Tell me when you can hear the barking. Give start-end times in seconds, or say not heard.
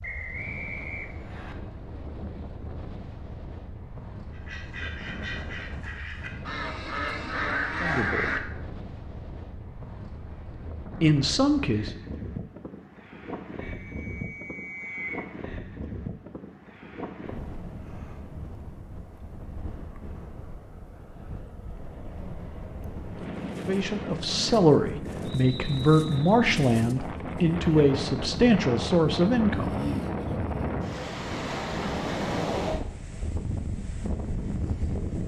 not heard.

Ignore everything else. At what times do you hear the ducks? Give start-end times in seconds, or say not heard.
4.3-8.4.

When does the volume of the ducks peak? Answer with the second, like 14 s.
8 s.